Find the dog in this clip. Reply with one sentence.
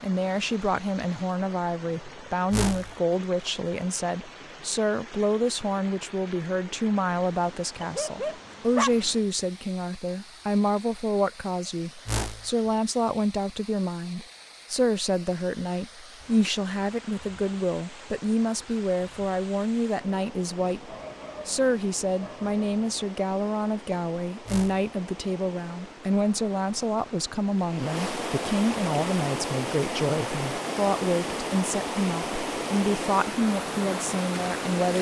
The dog can be heard from 7.8 to 8.9 s and from 20.6 to 23.1 s.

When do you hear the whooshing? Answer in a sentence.
You can hear the whooshing from 2.5 to 3.0 s, from 12.1 to 12.5 s and from 24.4 to 24.9 s.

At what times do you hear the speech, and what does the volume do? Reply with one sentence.
The speech can be heard from 0.0 to 34.9 s, at a steady volume.